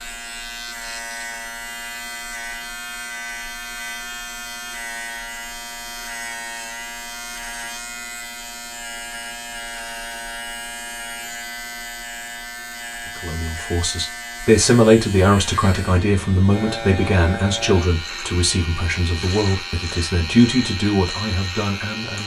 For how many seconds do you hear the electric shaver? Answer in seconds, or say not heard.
22 s.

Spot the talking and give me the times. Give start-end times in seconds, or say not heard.
13.2-22.2.